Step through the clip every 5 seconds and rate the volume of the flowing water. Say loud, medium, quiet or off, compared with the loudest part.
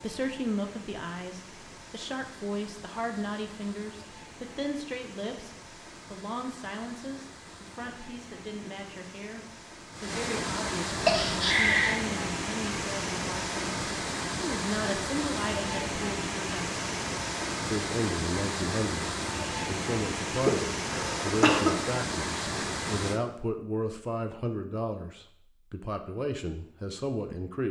quiet, quiet, loud, loud, loud, off.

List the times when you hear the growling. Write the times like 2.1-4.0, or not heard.
not heard.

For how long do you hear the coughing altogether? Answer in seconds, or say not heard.
2 s.